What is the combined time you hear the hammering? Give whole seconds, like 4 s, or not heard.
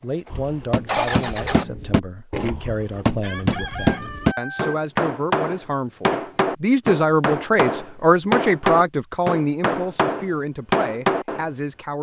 11 s.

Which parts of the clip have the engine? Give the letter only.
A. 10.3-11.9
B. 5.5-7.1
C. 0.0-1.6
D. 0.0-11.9
C.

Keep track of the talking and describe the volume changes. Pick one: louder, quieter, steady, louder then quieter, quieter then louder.
louder then quieter.